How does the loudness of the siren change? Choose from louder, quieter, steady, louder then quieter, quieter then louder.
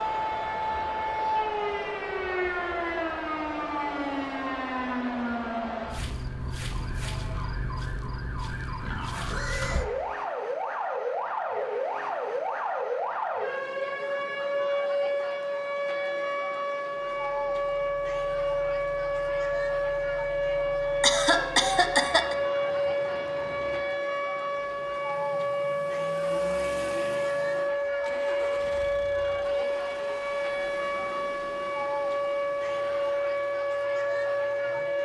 steady.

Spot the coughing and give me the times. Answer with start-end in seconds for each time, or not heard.
21.0-22.4.